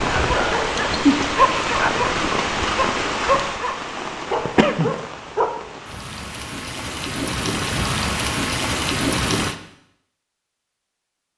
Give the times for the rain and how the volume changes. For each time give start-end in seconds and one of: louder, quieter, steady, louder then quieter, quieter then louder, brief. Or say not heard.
0.0-9.6 quieter then louder.